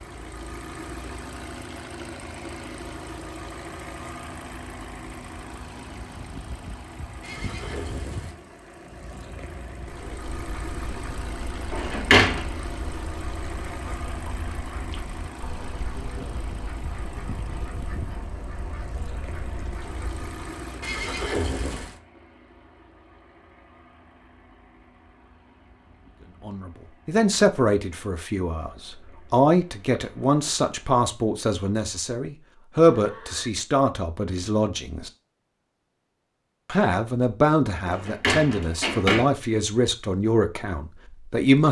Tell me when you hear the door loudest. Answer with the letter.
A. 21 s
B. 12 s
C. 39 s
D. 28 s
B.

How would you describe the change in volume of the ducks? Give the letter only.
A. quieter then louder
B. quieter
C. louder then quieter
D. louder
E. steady
E.